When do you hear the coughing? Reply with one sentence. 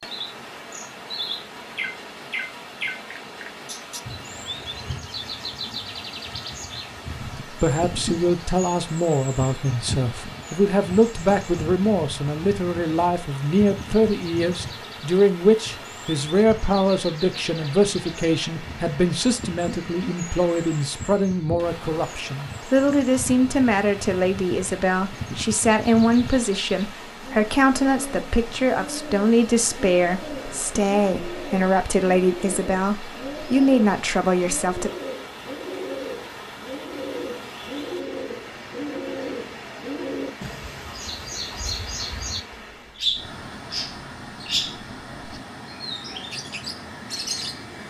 You can't hear the coughing here.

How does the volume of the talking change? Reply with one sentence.
The loudness of the talking stays about the same.